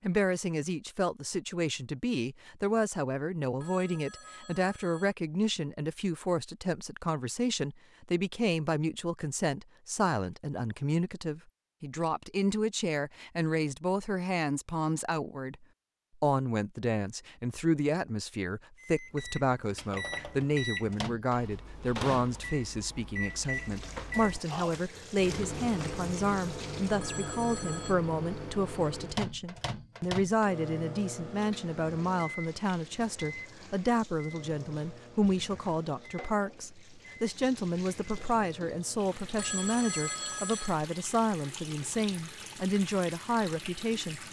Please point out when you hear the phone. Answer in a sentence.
The phone can be heard from 3.6 to 5.2 s, from 27.0 to 27.9 s and from 39.4 to 40.8 s.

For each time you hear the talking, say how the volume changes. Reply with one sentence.
The talking can be heard from 0.0 to 44.2 s, at a steady volume.